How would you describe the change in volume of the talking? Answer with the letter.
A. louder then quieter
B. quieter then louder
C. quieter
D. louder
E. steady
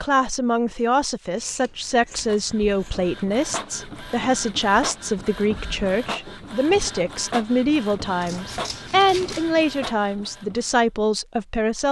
E.